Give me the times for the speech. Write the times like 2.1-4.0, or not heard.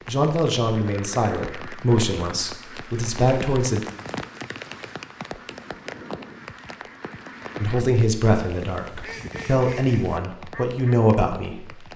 0.1-3.8, 7.6-11.9.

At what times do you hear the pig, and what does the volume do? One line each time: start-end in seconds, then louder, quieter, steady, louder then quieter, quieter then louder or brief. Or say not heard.
not heard.